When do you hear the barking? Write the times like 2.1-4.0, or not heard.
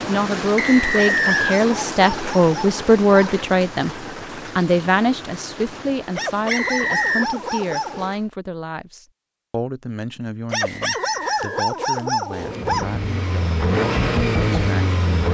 1.1-3.5, 6.1-8.2, 10.5-12.9.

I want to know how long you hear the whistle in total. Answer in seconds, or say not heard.
3 s.